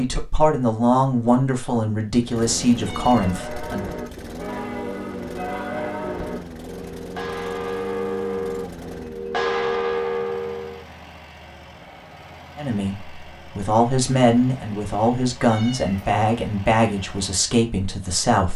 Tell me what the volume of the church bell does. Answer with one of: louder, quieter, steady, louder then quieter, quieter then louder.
louder.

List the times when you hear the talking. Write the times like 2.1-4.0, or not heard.
0.0-3.9, 12.6-18.5.